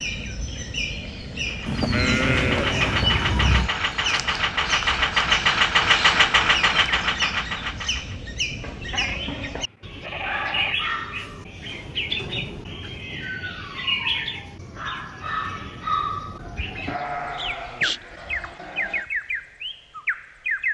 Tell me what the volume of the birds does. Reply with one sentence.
The loudness of the birds stays about the same.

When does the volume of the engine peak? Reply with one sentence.
The loudest moment of the engine is at 6 seconds.